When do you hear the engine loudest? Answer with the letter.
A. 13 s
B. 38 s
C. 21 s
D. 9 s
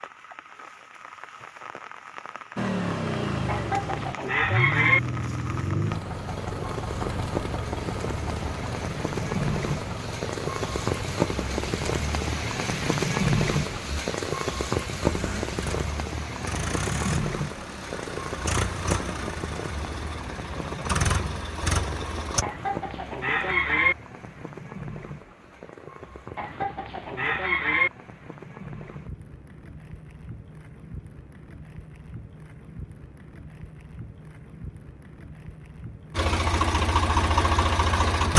B.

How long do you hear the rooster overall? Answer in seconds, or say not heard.
5 s.